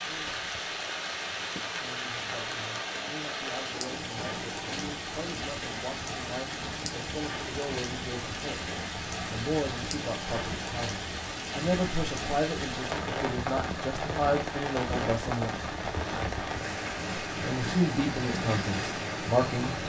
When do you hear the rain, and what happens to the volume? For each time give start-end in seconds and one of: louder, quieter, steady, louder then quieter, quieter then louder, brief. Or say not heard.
0.0-19.8 steady.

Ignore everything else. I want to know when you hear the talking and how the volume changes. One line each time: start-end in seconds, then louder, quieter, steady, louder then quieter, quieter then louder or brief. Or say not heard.
1.7-15.5 louder
17.4-19.8 brief.